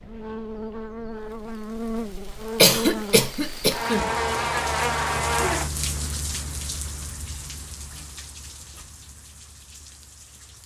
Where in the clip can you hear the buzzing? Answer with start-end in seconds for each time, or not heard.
0.0-5.8.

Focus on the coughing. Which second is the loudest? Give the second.
3 s.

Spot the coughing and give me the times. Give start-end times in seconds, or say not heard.
2.5-4.1.